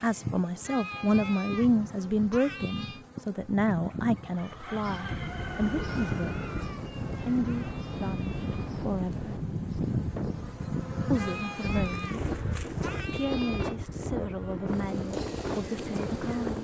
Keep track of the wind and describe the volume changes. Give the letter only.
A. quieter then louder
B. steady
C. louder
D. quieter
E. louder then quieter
B.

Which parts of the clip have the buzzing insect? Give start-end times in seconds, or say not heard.
0.0-16.5.